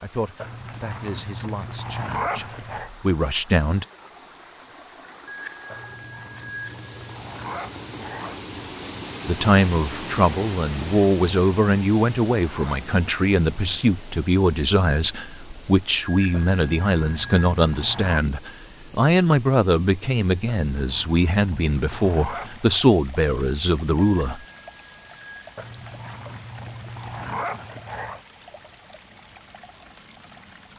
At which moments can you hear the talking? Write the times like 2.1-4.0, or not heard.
0.0-3.9, 9.2-24.4.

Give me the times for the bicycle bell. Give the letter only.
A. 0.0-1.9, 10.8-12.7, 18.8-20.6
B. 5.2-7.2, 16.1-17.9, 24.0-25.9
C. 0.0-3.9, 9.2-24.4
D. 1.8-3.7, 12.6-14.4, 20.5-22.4
B.